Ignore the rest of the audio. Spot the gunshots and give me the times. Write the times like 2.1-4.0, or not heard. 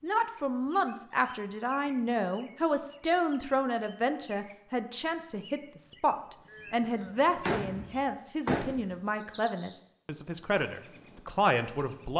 6.5-8.9.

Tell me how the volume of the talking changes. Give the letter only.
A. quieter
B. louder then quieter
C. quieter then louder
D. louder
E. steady
E.